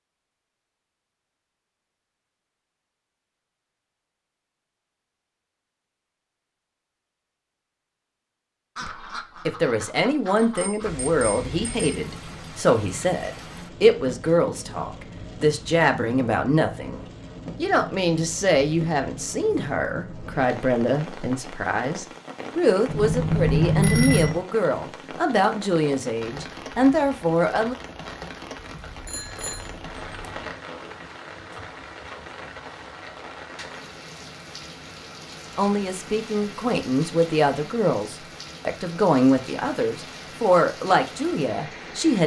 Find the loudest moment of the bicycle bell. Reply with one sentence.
The volume of the bicycle bell peaks at 24 seconds.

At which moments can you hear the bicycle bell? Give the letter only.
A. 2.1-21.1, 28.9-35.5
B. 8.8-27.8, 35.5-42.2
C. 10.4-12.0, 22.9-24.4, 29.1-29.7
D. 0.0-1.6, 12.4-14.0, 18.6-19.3
C.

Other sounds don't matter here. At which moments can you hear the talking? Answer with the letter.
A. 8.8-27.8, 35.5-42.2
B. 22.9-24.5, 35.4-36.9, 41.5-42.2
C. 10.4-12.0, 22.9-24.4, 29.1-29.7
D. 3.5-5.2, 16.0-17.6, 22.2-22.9
A.